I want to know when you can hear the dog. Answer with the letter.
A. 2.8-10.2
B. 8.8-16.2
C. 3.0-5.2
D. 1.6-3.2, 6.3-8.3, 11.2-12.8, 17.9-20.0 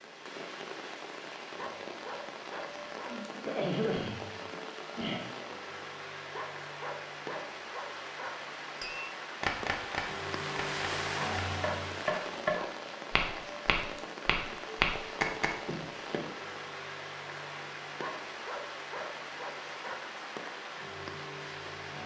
D.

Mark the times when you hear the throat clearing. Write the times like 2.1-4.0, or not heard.
3.0-5.2.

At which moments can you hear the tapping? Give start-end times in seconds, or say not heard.
8.8-16.2.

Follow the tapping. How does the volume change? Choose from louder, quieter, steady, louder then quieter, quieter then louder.
quieter then louder.